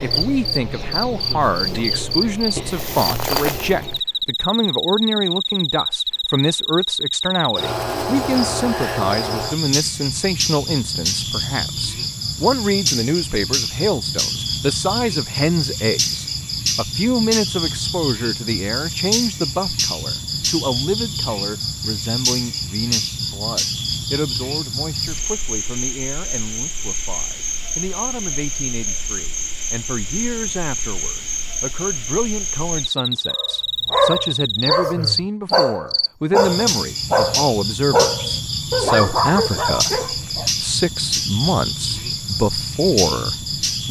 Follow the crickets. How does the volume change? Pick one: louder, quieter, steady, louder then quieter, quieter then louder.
steady.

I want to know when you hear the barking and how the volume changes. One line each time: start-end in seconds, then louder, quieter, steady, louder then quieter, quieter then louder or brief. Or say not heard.
33.3-40.5 steady.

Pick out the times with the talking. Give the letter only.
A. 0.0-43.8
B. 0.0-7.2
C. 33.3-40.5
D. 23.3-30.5
A.